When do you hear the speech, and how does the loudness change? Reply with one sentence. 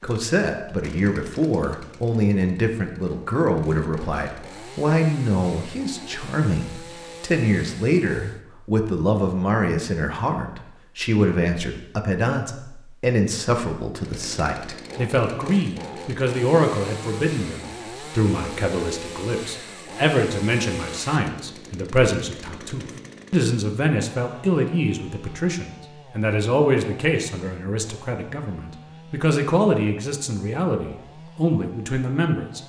The speech can be heard from 0.0 to 32.6 s, at a steady volume.